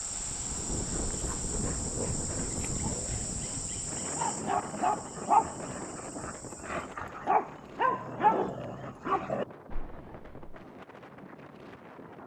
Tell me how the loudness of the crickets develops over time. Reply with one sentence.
The loudness of the crickets goes down.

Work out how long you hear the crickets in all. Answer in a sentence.
The crickets can be heard for 7 seconds in total.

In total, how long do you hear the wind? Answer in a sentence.
You can hear the wind for 12 seconds altogether.